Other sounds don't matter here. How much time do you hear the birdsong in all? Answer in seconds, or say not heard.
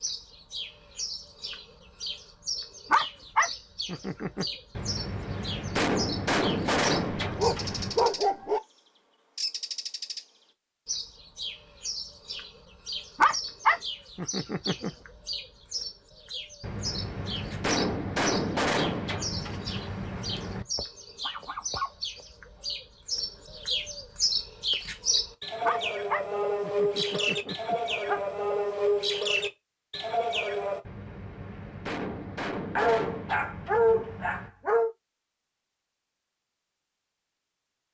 29 s.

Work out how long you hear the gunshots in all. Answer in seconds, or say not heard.
11 s.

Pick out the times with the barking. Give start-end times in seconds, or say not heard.
2.9-4.5, 7.1-8.6, 13.2-14.9, 20.8-22.6, 25.6-28.2, 32.8-34.9.